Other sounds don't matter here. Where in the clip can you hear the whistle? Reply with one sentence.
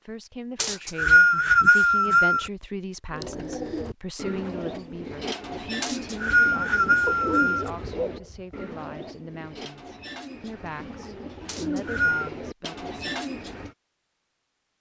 The whistle can be heard from 0.6 to 2.5 s, from 5.8 to 7.7 s and from 11.4 to 12.3 s.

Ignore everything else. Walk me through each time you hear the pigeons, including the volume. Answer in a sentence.
You can hear the pigeons from 3.1 to 13.8 s, getting quieter then louder.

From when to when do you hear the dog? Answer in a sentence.
The dog can be heard from 7.0 to 8.6 s.